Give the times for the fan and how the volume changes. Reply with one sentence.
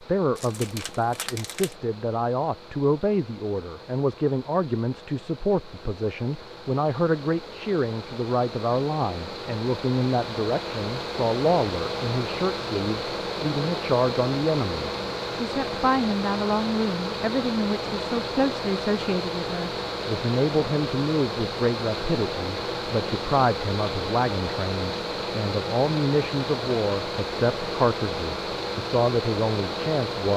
The fan can be heard from 0.0 to 30.3 s, getting louder.